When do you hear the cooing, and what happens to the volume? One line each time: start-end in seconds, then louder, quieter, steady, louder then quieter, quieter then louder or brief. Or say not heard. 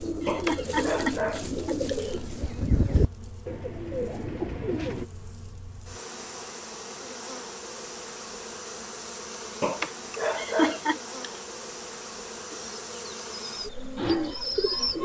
0.0-5.0 steady
12.5-15.0 brief.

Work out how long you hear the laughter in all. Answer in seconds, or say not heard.
2 s.